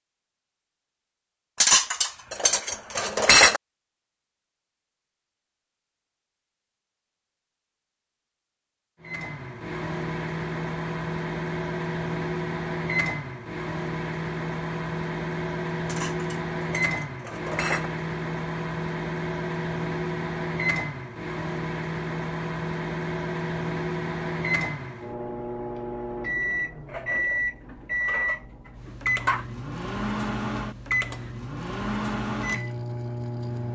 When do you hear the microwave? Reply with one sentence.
The microwave can be heard from 9.0 to 33.7 s.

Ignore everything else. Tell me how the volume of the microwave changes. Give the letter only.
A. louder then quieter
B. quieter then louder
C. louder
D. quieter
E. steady
E.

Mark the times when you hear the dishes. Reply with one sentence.
You can hear the dishes from 1.6 to 3.6 s, from 15.8 to 17.9 s and from 26.9 to 29.4 s.